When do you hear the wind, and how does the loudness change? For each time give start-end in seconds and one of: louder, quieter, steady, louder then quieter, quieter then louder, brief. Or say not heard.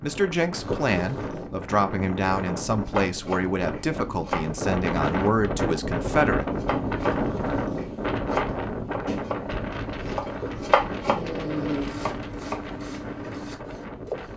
0.0-14.3 louder then quieter.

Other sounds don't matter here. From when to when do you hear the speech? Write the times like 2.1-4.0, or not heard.
0.0-6.5.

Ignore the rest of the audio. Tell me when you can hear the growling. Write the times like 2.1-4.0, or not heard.
0.6-1.5, 7.0-7.9, 10.3-11.9.